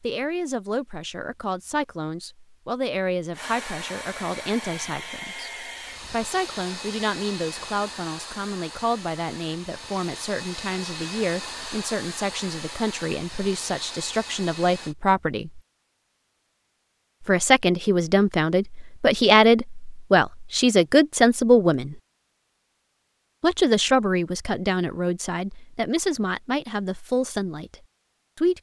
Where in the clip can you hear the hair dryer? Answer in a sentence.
You can hear the hair dryer from 3.3 to 14.9 s.